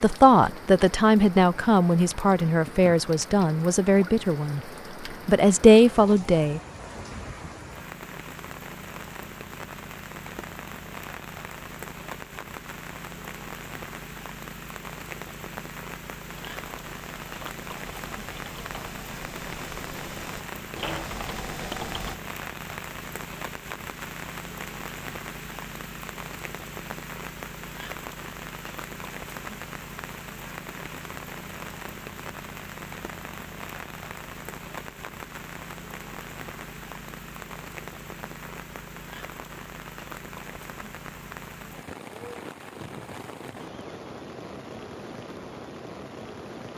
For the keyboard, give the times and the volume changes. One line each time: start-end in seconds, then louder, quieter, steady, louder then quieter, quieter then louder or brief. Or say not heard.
16.5-22.1 louder.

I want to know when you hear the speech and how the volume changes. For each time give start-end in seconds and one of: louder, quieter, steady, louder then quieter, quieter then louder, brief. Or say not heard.
0.0-4.6 steady
5.2-6.6 brief.